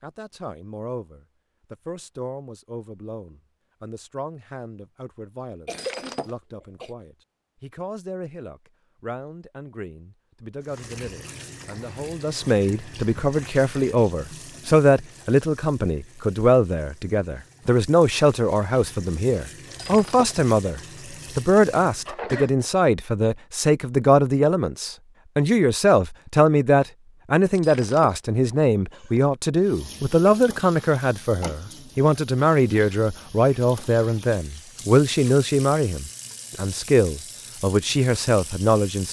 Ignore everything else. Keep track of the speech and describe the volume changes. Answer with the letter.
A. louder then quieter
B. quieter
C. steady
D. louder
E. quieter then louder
D.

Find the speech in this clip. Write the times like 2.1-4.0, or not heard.
0.0-39.0.